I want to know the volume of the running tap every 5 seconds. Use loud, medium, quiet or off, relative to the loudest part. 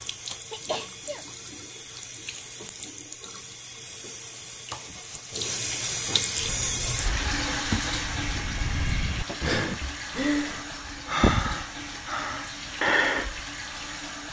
medium, loud, medium.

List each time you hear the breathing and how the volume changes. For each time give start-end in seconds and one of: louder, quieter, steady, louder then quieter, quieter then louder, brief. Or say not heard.
6.3-13.4 louder.